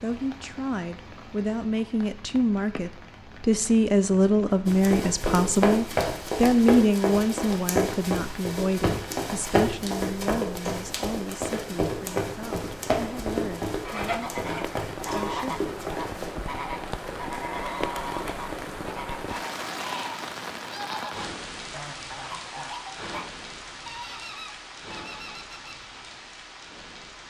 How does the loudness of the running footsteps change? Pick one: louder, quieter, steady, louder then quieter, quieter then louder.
quieter.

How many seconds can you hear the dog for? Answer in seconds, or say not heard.
not heard.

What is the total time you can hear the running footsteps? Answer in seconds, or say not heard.
12 s.